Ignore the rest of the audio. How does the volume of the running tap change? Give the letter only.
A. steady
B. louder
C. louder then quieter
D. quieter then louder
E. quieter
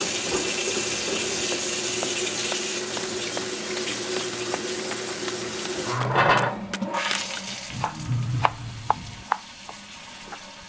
E.